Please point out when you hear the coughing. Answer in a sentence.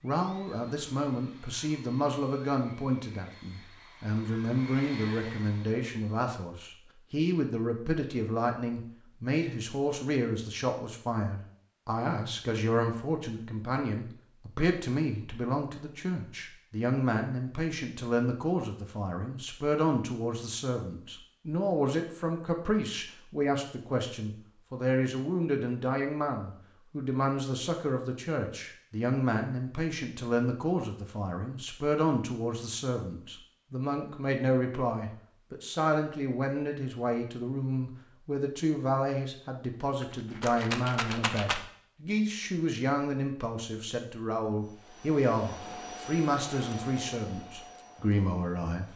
The coughing can't be heard in this clip.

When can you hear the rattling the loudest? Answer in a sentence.
The volume of the rattling peaks at 41 seconds.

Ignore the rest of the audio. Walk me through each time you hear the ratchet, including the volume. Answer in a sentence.
The ratchet can't be heard in this clip.